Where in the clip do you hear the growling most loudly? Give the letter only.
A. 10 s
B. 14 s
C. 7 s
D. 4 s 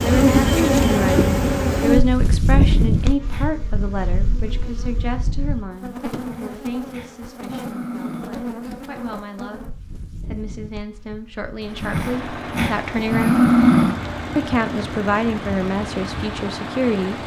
B.